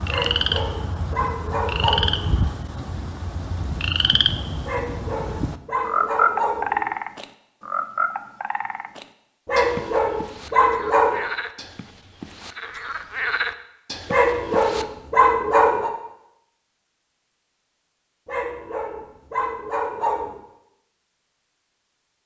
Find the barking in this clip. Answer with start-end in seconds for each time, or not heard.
0.1-2.4, 4.7-6.9, 9.4-11.2, 14.1-15.9, 18.2-20.4.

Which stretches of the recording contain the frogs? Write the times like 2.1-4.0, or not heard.
0.0-14.8.